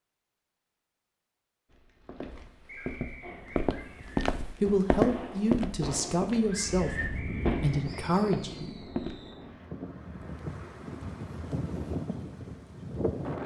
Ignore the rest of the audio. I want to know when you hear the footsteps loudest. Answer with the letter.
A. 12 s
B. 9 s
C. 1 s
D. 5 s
D.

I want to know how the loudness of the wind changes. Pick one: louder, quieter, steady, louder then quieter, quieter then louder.
quieter then louder.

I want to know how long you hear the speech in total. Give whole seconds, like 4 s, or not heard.
4 s.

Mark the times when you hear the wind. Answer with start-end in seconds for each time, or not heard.
6.9-13.4.